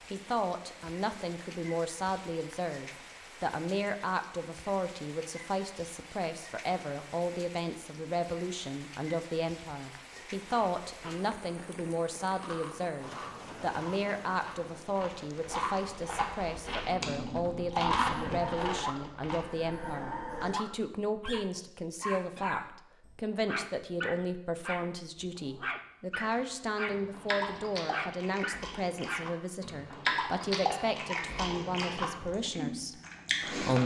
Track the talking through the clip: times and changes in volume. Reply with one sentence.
You can hear the talking from 0.1 to 33.8 s, at a steady volume.